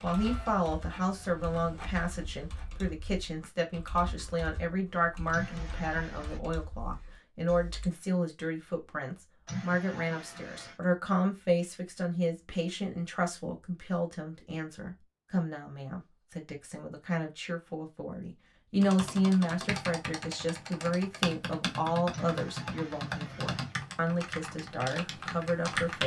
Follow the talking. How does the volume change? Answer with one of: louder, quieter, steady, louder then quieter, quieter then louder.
steady.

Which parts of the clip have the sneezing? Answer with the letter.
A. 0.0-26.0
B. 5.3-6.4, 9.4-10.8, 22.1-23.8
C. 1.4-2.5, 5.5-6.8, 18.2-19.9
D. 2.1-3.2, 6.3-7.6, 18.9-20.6
B.